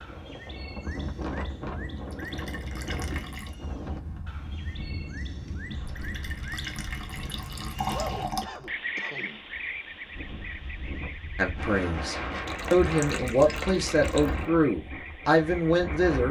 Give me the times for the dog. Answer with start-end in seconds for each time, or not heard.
not heard.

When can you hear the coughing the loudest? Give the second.
8 s.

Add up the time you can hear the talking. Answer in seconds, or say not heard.
5 s.